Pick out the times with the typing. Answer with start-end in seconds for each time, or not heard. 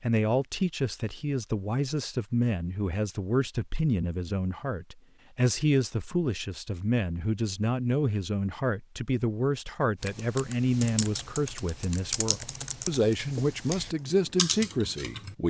10.0-15.3.